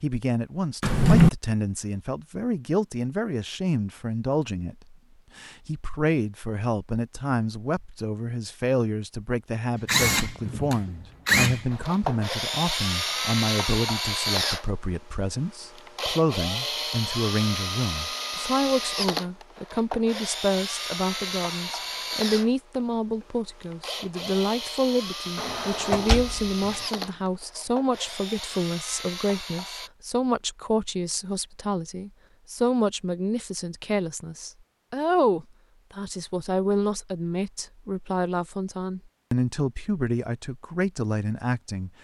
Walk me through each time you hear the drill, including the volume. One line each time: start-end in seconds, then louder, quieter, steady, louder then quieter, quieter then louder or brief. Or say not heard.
9.8-29.9 quieter.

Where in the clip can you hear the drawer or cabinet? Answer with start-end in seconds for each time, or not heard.
0.8-1.3, 25.4-26.8.